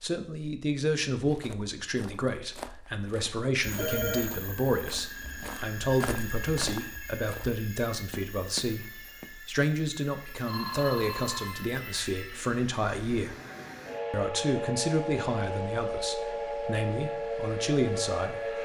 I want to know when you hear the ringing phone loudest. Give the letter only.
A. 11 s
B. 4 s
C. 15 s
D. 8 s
B.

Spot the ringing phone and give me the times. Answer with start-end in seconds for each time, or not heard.
3.6-4.3, 10.4-11.6.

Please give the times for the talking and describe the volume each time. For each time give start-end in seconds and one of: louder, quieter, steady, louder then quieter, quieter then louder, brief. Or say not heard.
0.0-13.3 steady
14.1-18.6 quieter then louder.